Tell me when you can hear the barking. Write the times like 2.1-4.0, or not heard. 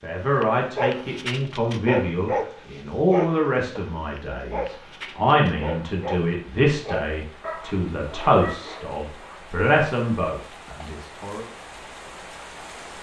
0.4-9.4.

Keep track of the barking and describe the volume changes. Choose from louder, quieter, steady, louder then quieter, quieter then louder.
quieter.